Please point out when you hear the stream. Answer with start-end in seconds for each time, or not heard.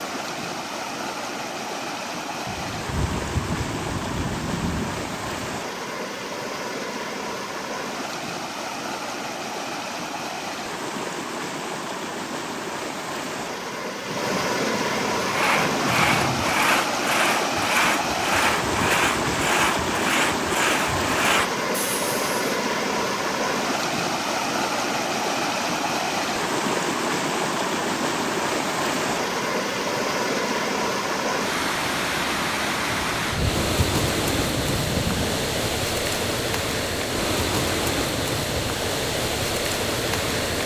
0.0-40.6.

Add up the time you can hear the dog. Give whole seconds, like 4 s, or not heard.
not heard.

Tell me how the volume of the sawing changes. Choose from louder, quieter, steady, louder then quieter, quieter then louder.
steady.